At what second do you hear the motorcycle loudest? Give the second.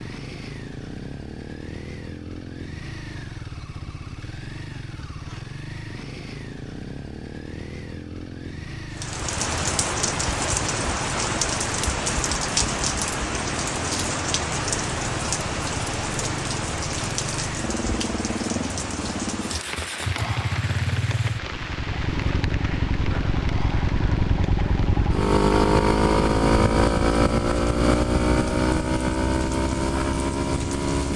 26 s.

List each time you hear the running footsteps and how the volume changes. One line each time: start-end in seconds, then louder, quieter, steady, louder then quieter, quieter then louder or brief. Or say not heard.
not heard.